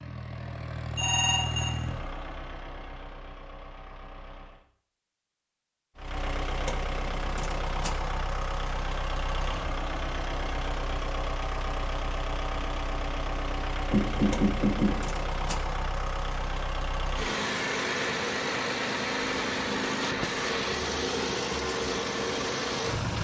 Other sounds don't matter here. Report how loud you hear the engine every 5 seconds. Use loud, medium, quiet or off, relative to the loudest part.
medium, medium, medium, loud, loud.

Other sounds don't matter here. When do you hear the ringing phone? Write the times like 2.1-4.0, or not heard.
0.9-1.8, 13.9-14.9.